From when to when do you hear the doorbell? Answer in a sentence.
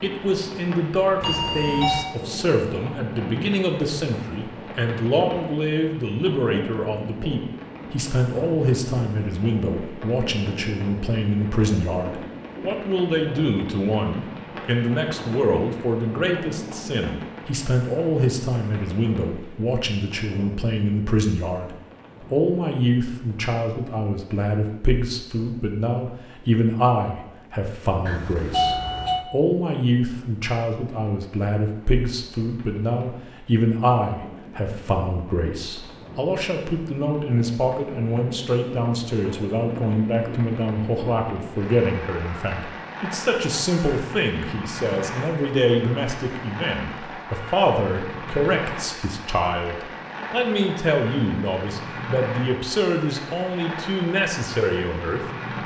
The doorbell can be heard from 1.2 to 2.1 s and from 28.1 to 29.3 s.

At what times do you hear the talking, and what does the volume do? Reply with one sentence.
The talking can be heard from 0.0 to 55.6 s, at a steady volume.